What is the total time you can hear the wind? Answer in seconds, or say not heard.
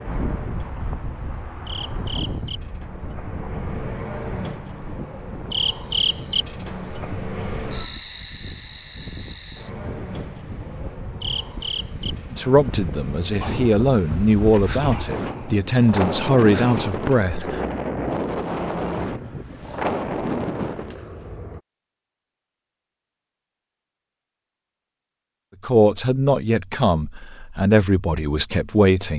21 s.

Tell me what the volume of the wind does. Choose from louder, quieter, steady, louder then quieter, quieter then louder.
quieter then louder.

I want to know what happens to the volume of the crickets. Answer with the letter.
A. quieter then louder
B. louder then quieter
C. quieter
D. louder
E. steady
B.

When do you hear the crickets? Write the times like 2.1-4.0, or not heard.
0.0-21.6.